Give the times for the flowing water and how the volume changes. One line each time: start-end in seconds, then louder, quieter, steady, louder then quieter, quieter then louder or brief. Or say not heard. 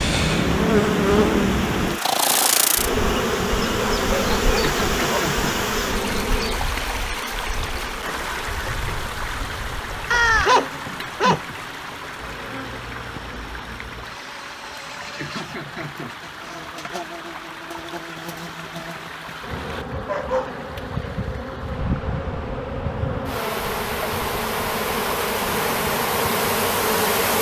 0.2-27.3 quieter.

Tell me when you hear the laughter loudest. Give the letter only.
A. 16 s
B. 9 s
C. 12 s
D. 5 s
D.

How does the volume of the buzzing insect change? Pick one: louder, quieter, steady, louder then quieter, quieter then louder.
quieter then louder.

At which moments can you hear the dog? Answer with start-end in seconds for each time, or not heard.
3.8-5.2, 10.1-11.4, 20.1-20.6.